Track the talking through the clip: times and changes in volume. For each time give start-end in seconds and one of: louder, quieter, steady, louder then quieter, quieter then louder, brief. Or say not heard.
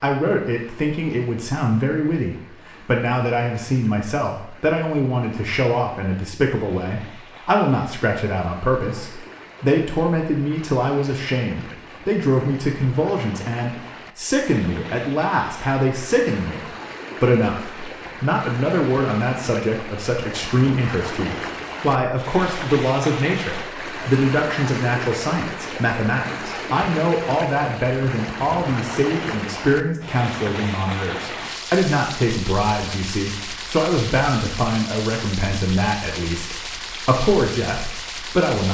0.0-38.6 steady.